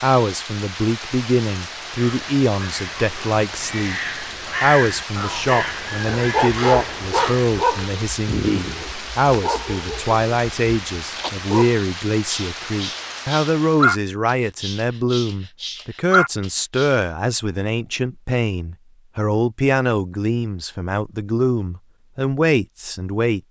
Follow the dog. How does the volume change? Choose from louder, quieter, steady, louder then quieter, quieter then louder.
quieter then louder.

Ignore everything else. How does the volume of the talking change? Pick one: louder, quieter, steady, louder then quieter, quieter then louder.
steady.